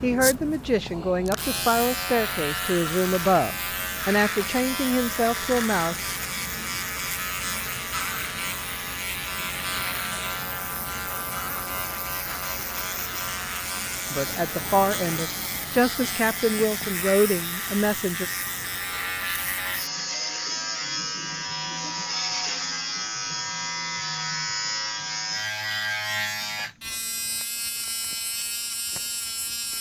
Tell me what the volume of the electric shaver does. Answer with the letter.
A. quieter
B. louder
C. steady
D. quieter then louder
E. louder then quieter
C.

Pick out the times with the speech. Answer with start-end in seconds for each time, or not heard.
0.0-6.2, 14.1-18.2.